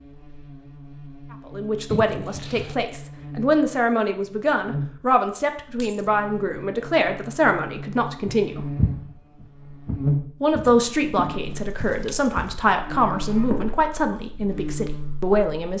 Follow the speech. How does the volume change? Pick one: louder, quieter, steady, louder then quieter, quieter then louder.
steady.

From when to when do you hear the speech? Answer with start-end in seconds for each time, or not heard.
1.5-8.7, 10.4-15.7.